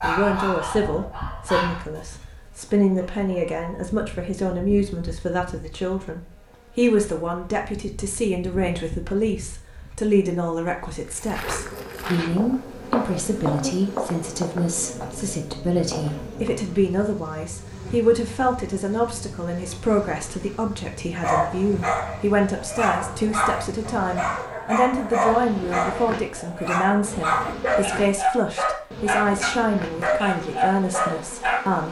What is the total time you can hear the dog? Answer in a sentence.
You can hear the dog for 14 seconds altogether.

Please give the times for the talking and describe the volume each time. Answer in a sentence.
The talking can be heard from 0.0 to 31.8 s, at a steady volume.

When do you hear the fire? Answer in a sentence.
You can't hear the fire here.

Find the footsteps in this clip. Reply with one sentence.
You can hear the footsteps from 11.1 to 16.5 s.